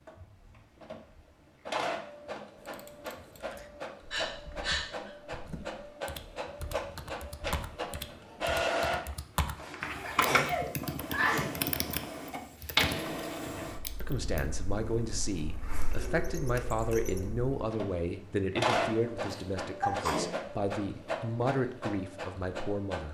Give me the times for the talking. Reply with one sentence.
You can hear the talking from 13.4 to 23.0 s.